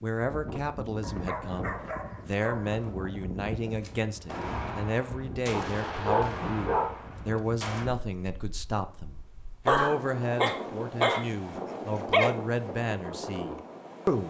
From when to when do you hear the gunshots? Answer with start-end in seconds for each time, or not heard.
3.8-7.9.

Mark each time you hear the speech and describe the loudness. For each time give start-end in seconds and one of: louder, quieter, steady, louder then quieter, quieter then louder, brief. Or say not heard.
0.0-14.2 steady.